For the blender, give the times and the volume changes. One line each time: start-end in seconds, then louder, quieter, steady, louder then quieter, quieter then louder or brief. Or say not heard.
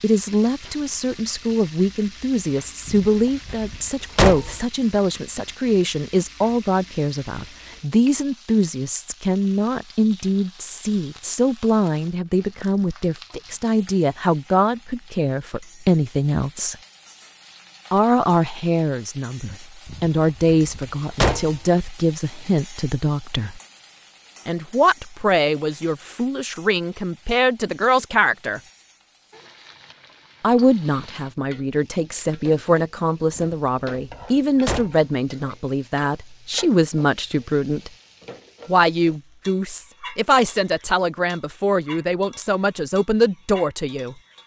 not heard.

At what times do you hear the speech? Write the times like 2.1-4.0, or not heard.
0.0-16.8, 17.9-23.6, 24.4-28.6, 30.4-37.9, 38.6-44.1.